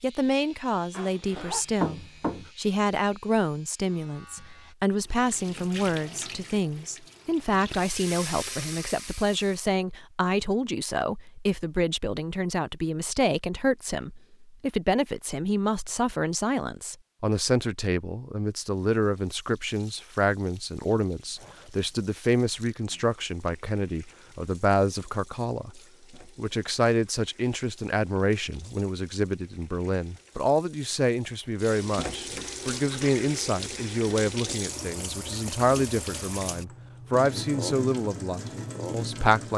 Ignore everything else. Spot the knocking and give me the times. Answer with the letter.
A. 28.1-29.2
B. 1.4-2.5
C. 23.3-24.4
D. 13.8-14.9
B.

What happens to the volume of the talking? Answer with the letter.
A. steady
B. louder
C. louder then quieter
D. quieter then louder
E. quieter
A.